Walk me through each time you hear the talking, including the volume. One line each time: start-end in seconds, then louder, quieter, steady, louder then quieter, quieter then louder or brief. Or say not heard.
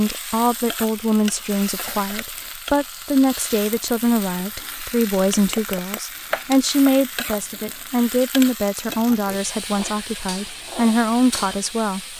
0.0-12.0 steady.